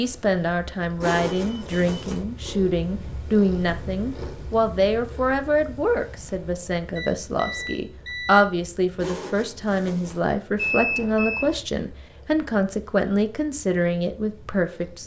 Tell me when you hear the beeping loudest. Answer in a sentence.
The volume of the beeping peaks at 11 seconds.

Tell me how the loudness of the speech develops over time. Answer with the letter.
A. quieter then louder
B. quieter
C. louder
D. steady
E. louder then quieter
D.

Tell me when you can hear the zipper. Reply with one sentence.
The zipper can be heard from 1.0 to 2.2 s and from 8.9 to 10.2 s.